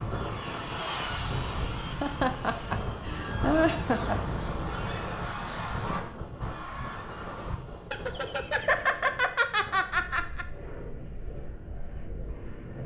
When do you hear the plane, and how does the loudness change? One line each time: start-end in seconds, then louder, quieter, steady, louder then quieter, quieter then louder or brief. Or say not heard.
0.0-12.8 quieter.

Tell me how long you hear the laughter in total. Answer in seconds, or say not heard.
5 s.